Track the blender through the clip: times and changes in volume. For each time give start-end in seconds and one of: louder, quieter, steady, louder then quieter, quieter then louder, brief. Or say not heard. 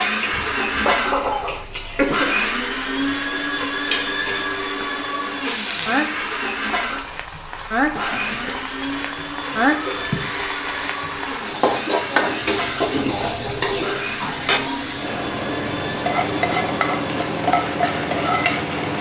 0.0-18.9 quieter.